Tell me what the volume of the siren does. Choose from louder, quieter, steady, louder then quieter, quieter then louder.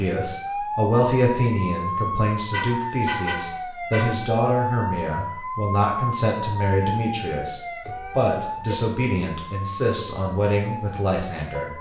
quieter.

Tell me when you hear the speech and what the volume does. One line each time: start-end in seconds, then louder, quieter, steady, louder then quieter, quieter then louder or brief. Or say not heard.
0.0-11.7 steady.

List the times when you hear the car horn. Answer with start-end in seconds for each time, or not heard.
2.5-4.2, 7.8-8.8.